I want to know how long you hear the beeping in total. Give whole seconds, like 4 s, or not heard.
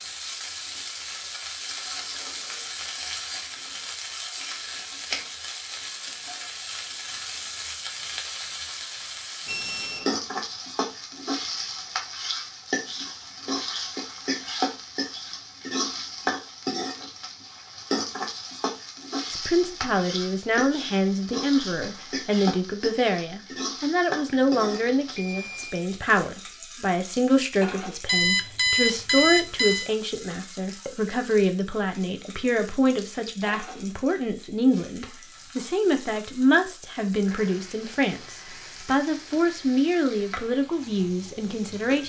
4 s.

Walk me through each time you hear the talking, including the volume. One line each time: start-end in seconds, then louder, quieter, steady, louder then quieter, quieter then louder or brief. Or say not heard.
19.3-42.0 steady.